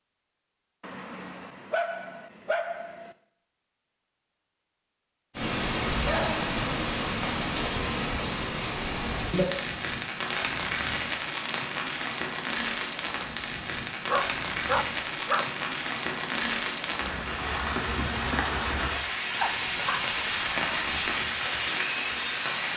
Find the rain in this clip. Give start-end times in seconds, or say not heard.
5.3-22.7.